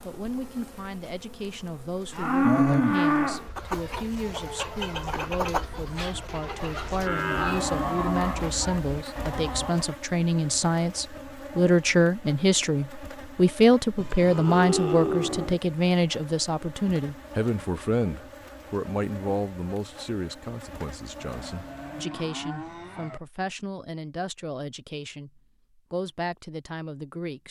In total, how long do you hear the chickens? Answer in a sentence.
You can hear the chickens for 6 seconds altogether.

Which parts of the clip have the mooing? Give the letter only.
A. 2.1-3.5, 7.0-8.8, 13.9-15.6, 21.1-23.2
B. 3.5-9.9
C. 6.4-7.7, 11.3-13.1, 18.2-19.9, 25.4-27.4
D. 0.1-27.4
A.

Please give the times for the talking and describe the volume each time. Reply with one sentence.
You can hear the talking from 0.1 to 27.4 s, getting louder then quieter.